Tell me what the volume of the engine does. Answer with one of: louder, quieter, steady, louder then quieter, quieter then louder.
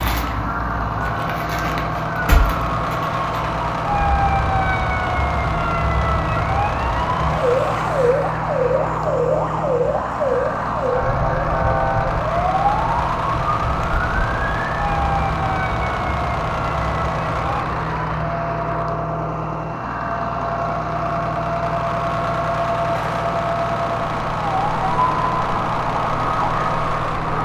steady.